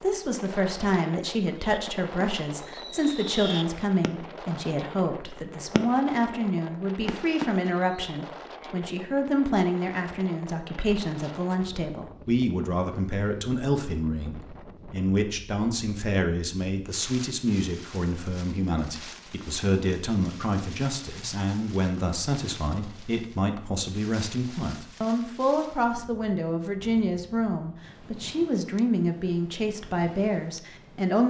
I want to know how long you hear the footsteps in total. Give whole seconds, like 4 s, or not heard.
not heard.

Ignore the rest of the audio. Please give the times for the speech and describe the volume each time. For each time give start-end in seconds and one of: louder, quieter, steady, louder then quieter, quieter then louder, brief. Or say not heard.
0.0-31.2 steady.